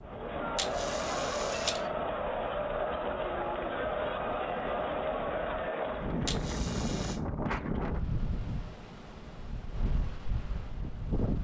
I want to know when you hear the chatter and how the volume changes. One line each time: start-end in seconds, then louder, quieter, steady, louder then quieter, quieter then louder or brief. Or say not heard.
0.0-6.3 steady.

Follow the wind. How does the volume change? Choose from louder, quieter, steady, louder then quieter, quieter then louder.
louder then quieter.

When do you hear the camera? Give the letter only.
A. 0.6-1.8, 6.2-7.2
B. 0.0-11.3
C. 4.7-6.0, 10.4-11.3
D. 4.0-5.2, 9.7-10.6
A.